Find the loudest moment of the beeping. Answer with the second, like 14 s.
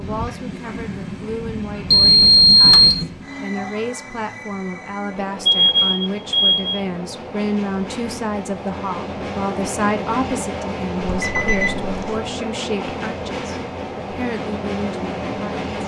3 s.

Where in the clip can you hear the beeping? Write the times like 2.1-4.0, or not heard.
1.9-3.0, 5.5-6.8, 11.1-12.2.